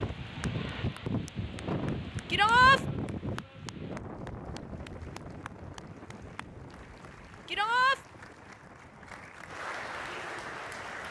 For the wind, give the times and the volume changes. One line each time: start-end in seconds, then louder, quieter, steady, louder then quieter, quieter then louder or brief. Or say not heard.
0.0-11.0 quieter.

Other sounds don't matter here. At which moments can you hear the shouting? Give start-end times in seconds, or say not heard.
2.3-2.8, 7.5-8.0.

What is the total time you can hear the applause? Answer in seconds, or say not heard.
11 s.